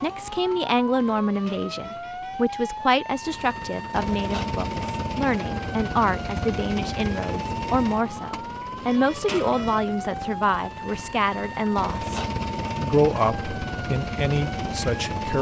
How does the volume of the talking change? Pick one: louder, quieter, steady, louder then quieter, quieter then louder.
steady.